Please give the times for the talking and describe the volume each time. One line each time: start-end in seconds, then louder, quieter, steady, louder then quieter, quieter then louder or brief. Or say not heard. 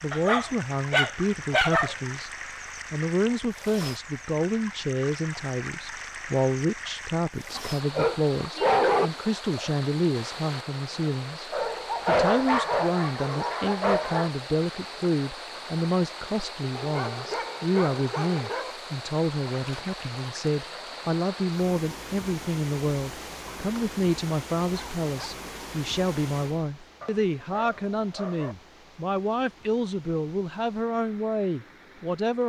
0.0-2.3 brief
2.9-32.4 steady.